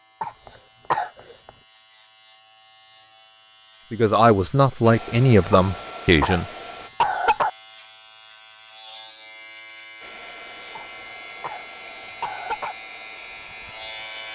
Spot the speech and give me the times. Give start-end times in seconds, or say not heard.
3.9-6.5.